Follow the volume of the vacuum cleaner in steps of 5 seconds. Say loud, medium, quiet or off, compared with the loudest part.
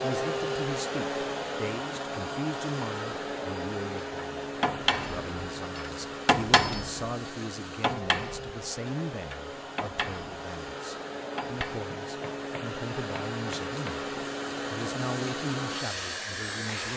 loud, medium, loud, loud.